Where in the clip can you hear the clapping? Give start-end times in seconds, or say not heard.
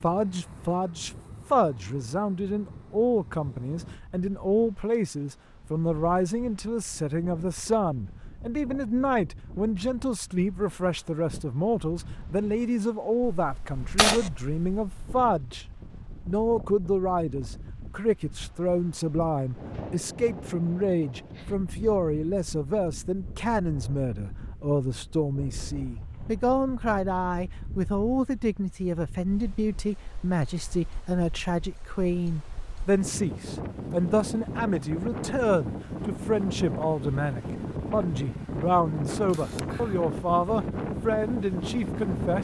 not heard.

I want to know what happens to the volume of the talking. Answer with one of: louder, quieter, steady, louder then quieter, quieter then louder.
steady.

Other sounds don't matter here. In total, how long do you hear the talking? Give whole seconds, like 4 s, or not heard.
42 s.